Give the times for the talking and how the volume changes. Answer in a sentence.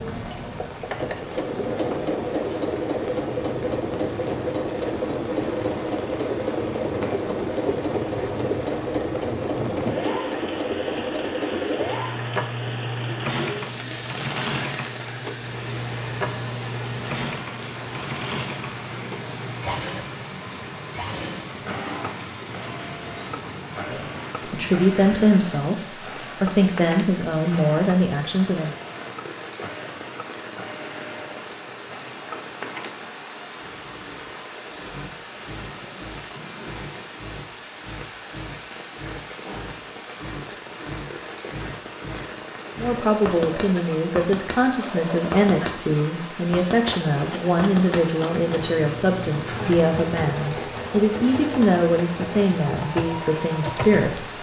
The talking can be heard briefly from 23.9 to 25.8 s; briefly from 26.4 to 28.8 s; and from 42.8 to 54.3 s, at a steady volume.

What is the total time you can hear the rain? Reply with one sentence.
The rain can be heard for 54 seconds in total.